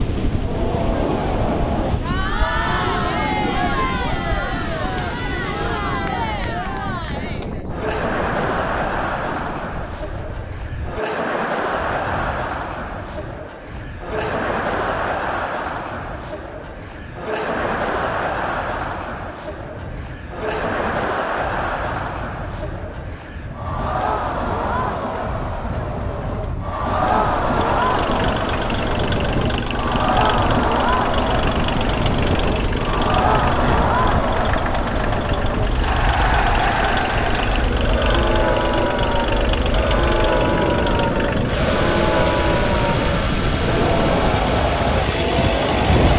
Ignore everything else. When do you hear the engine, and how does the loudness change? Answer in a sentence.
The engine can be heard from 27.4 to 46.1 s, at a steady volume.